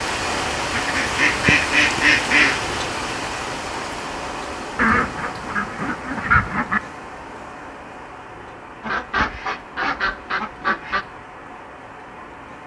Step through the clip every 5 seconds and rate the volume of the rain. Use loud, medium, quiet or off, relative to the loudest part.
loud, medium, quiet.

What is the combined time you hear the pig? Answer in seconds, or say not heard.
not heard.